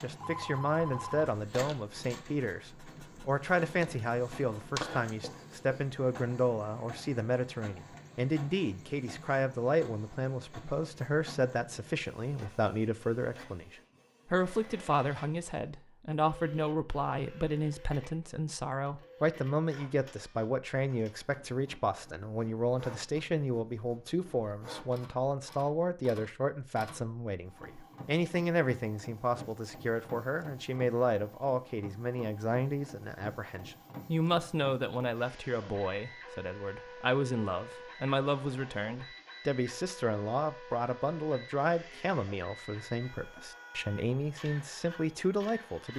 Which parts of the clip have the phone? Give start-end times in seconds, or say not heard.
0.2-1.3.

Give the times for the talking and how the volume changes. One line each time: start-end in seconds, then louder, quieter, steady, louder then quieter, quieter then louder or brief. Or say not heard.
0.0-45.9 steady.